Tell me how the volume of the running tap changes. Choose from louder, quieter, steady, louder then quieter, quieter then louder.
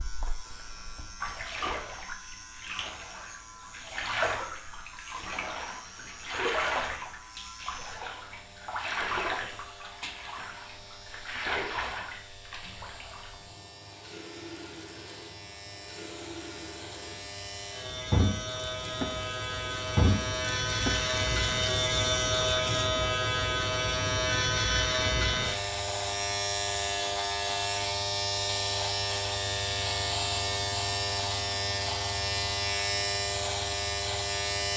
quieter then louder.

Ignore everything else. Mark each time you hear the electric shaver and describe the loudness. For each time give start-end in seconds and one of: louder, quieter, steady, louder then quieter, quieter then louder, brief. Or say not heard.
0.0-34.7 louder.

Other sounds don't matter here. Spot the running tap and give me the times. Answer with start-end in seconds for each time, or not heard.
0.0-22.9.